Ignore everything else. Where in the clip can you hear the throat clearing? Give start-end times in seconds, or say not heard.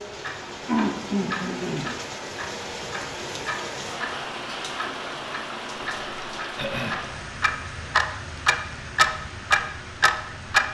0.7-1.9, 6.5-7.0.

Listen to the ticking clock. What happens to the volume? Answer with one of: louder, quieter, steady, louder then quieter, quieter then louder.
louder.